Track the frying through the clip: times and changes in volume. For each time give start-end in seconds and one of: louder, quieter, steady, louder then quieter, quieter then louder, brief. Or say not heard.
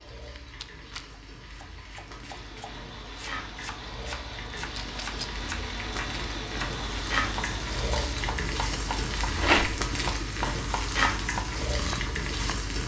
0.0-12.8 louder.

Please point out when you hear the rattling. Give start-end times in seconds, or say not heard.
0.1-1.1, 4.8-5.3, 9.3-9.8.